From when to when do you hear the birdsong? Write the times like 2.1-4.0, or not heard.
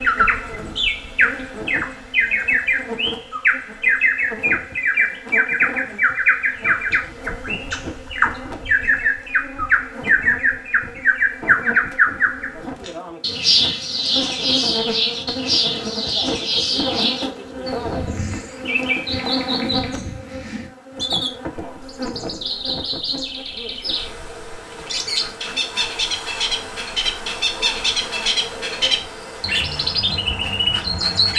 0.0-31.3.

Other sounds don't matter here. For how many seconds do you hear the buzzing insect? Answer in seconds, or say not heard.
31 s.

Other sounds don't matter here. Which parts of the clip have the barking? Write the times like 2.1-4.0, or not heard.
not heard.